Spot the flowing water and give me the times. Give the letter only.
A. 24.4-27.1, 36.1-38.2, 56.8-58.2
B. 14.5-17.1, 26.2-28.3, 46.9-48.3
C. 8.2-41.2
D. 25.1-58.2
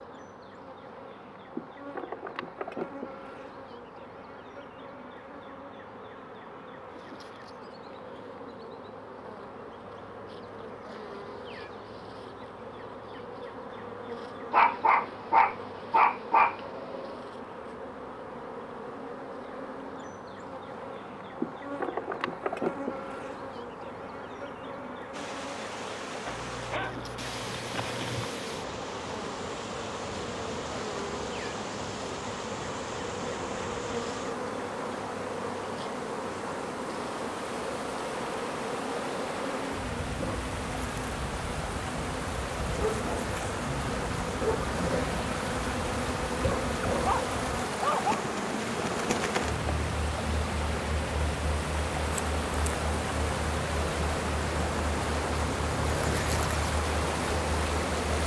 D.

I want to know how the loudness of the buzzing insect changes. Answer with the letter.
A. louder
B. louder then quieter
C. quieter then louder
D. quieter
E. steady
A.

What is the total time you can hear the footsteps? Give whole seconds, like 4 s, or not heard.
not heard.